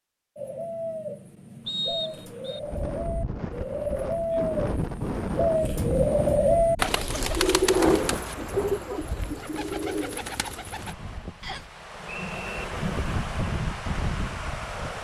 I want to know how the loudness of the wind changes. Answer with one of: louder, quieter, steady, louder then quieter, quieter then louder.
quieter then louder.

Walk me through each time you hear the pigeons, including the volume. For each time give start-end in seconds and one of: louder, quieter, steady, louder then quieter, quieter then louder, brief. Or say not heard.
0.3-10.9 louder then quieter.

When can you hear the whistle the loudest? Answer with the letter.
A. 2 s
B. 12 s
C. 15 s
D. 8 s
A.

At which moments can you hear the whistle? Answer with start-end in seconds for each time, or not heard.
1.6-2.6, 11.4-12.7.